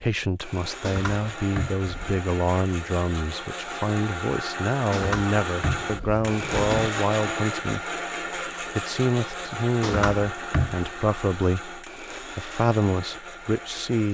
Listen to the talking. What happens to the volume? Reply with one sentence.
The volume of the talking stays about the same.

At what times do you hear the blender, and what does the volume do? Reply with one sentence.
You can hear the blender from 0.3 to 14.0 s, getting louder then quieter.